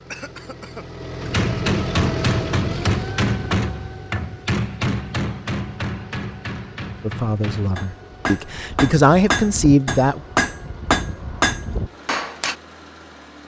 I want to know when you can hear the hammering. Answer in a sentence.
You can hear the hammering from 1.2 to 12.6 s.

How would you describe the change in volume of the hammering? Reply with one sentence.
The loudness of the hammering goes down, then up.